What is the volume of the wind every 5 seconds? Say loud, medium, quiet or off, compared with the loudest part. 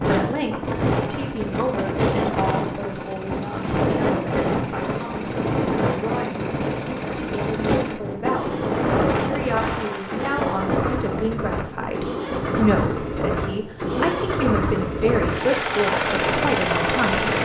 loud, loud, medium, medium.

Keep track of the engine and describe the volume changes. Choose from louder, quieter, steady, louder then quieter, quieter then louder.
louder.